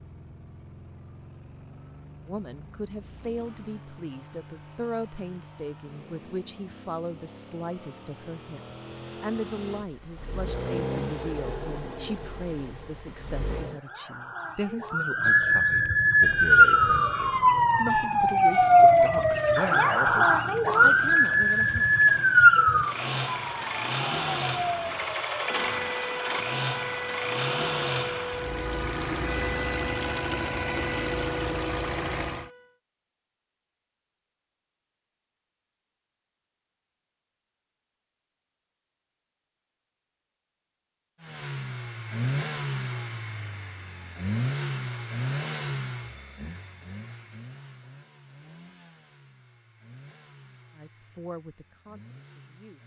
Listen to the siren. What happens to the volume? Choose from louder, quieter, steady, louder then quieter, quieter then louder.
quieter.